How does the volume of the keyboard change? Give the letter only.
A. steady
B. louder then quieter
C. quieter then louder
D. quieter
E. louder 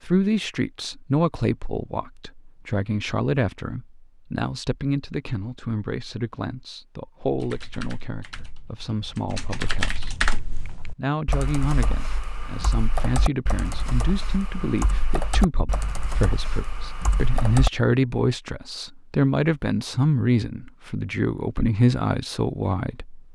B.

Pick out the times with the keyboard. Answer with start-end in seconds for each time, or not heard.
7.2-17.7.